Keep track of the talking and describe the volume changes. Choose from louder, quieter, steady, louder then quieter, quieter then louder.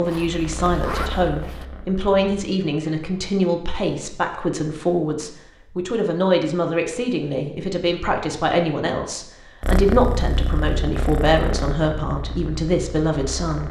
steady.